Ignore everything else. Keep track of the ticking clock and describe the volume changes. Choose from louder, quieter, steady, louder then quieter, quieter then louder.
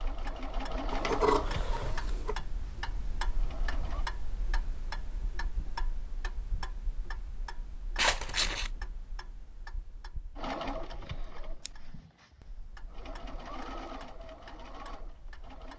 quieter.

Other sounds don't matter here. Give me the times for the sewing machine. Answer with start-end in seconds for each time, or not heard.
0.0-4.0, 10.3-15.7.